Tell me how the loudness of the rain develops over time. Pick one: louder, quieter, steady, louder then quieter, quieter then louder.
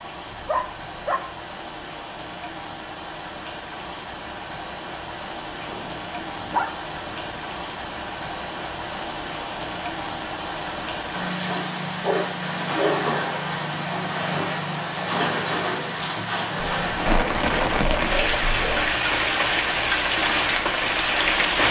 louder.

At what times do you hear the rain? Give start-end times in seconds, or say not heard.
0.0-21.6.